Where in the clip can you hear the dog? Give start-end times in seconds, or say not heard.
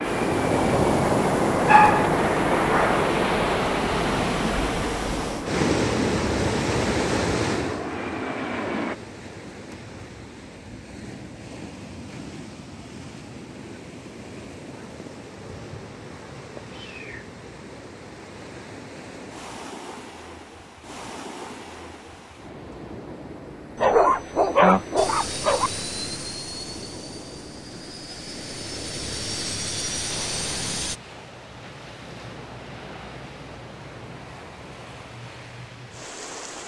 1.6-3.0, 23.8-25.7.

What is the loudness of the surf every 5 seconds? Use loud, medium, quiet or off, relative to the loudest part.
loud, loud, quiet, quiet, quiet, quiet, quiet, quiet.